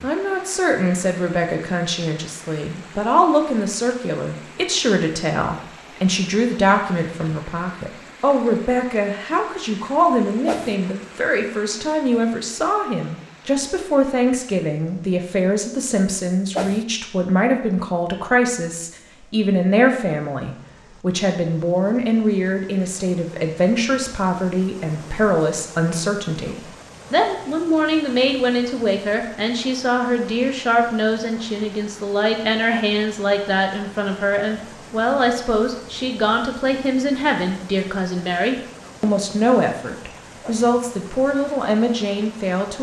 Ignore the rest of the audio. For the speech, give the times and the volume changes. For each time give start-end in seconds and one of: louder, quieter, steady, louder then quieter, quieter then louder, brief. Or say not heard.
0.0-42.7 steady.